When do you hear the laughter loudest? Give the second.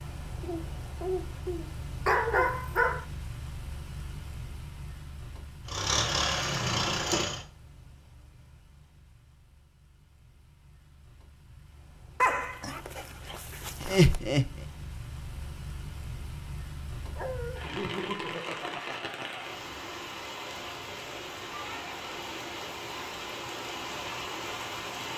14 s.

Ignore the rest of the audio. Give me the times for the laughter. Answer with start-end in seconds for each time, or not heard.
0.4-2.6, 13.8-14.5, 17.6-19.6.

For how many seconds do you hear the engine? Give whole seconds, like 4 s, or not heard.
2 s.